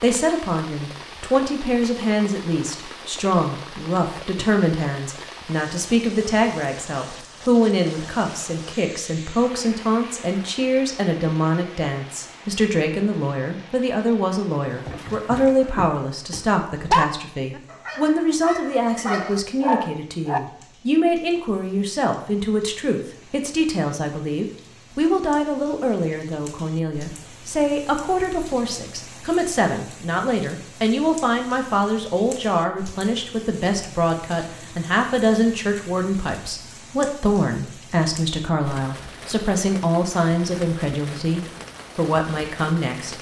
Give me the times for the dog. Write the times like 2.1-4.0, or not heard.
14.7-20.4.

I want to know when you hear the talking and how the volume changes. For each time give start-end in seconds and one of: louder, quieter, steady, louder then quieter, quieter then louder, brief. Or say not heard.
0.0-43.1 steady.